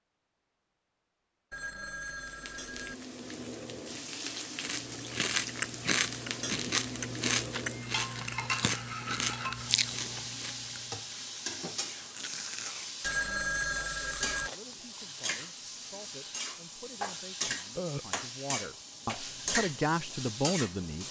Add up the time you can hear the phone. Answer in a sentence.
You can hear the phone for 3 seconds altogether.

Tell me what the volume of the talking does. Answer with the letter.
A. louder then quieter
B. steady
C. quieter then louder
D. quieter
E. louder
E.